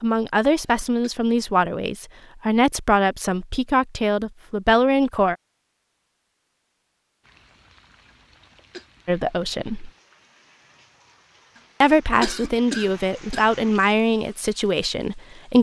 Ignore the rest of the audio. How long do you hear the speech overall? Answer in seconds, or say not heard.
10 s.